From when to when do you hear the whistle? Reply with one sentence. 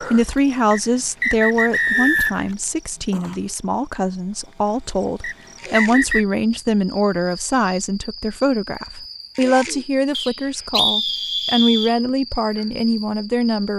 The whistle can be heard from 0.7 to 2.5 s, from 5.2 to 6.2 s and from 10.1 to 11.9 s.